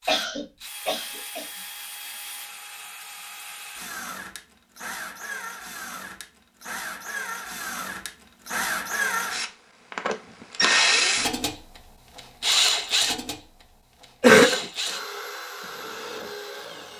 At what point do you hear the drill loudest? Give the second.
11 s.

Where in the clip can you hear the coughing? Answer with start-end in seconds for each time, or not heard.
0.1-1.5, 14.2-14.6.